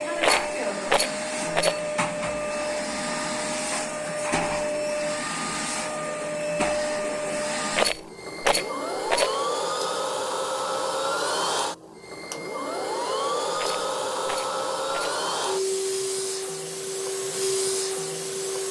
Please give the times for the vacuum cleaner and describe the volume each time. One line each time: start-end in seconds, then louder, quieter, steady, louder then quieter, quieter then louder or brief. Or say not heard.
0.0-18.6 steady.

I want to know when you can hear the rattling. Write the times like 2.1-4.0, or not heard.
0.1-1.8, 7.7-9.3, 13.6-15.2.